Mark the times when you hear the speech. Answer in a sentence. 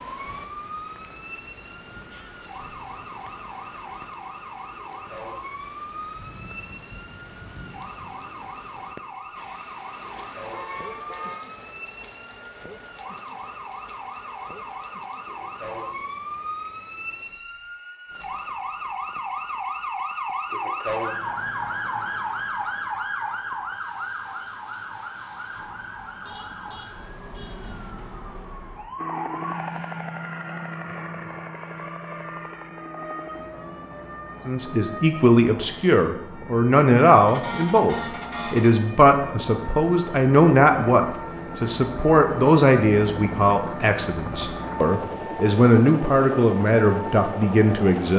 The speech can be heard from 34.5 to 48.1 s.